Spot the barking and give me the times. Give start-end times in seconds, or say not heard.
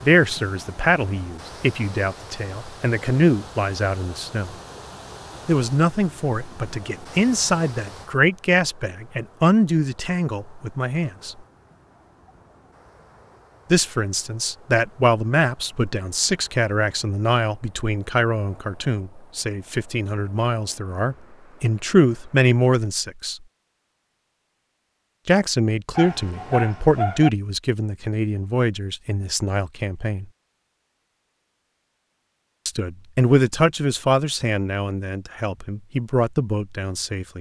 25.9-27.3.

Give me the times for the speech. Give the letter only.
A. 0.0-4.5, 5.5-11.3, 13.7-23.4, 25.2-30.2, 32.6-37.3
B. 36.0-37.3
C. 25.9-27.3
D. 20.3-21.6
A.